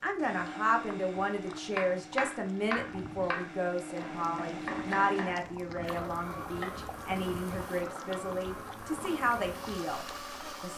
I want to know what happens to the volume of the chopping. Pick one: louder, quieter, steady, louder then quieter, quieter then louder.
quieter.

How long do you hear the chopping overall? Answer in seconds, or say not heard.
5 s.